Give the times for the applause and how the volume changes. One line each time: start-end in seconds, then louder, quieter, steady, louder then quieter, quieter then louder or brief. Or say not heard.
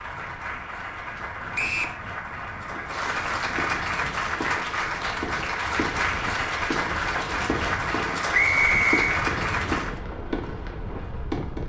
0.0-10.0 louder.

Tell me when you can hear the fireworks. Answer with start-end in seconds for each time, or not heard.
2.6-11.6.